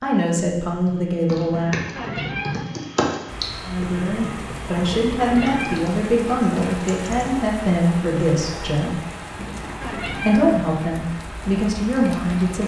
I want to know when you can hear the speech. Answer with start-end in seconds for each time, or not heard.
0.0-1.8, 3.6-9.0, 10.2-12.6.